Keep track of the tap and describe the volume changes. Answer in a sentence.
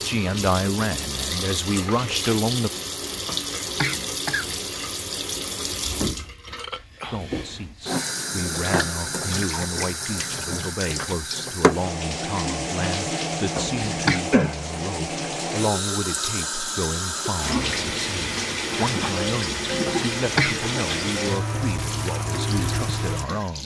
The volume of the tap stays about the same.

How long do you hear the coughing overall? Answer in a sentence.
The coughing can be heard for 3 seconds in total.